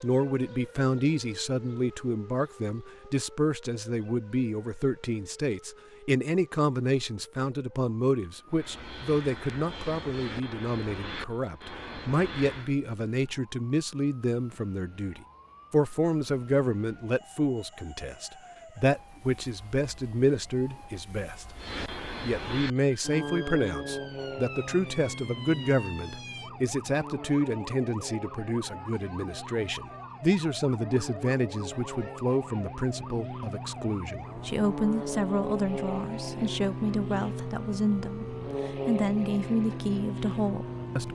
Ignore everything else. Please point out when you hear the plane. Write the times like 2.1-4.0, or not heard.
8.5-12.8, 21.6-41.1.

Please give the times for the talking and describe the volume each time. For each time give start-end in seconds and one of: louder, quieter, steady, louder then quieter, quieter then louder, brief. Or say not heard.
0.0-21.6 steady
22.2-41.1 steady.